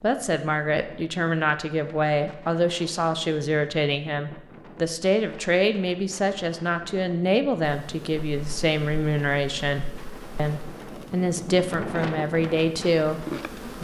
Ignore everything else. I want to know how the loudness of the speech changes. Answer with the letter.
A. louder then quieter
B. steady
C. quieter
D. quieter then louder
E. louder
B.